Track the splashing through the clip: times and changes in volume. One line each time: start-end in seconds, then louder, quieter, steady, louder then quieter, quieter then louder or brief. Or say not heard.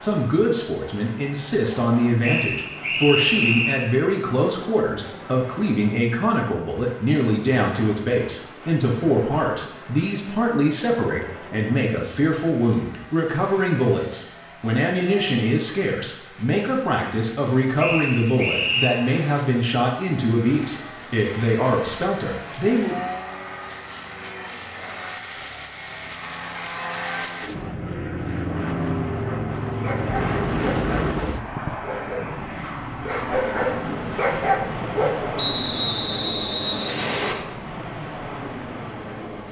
not heard.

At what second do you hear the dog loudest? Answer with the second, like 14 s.
34 s.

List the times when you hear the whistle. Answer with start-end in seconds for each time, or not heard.
2.2-3.9, 17.8-18.9, 35.4-37.4.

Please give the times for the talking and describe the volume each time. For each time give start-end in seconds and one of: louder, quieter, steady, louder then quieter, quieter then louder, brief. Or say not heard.
0.0-22.9 steady.